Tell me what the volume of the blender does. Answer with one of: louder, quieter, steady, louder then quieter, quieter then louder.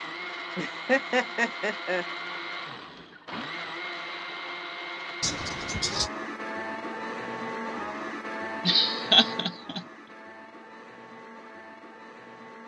quieter.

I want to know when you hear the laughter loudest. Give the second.
9 s.